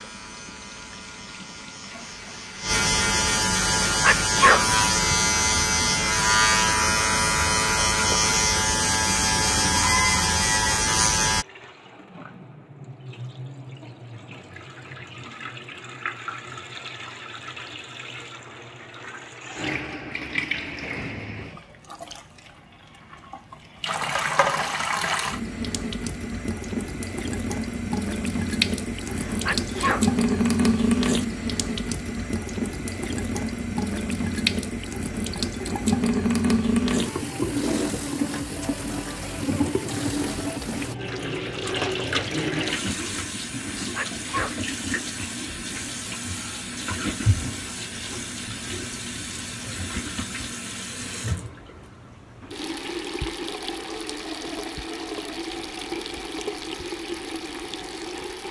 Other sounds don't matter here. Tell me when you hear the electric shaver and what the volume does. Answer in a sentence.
The electric shaver can be heard from 0.0 to 11.4 s, getting louder.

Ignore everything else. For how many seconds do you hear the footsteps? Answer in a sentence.
The footsteps can't be heard in this clip.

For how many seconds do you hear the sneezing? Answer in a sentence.
You can hear the sneezing for 4 seconds altogether.